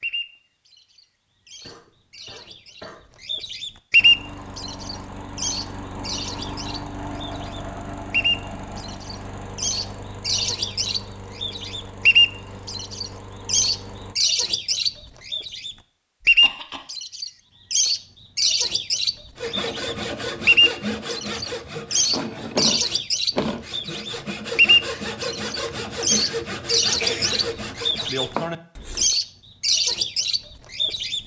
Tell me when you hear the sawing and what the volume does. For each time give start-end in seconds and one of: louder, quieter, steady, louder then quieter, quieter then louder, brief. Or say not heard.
19.4-29.1 steady.